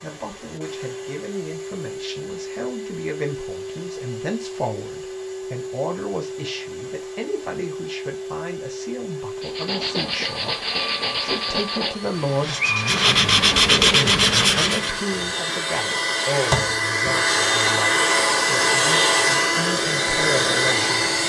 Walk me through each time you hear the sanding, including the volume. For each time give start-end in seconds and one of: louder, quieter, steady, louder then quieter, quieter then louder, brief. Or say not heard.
9.4-15.0 louder.